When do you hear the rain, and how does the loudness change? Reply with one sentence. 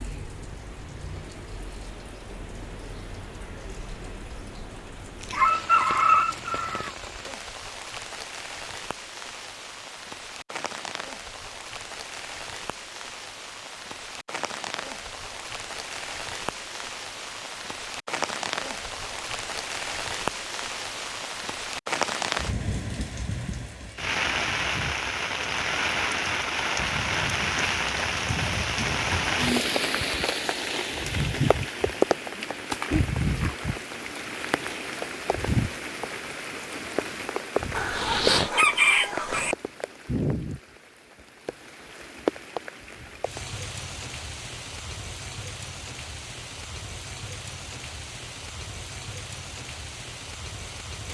The rain can be heard from 0.0 to 51.0 s, getting louder then quieter.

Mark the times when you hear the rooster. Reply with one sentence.
The rooster can be heard from 5.3 to 6.9 s and from 37.8 to 39.5 s.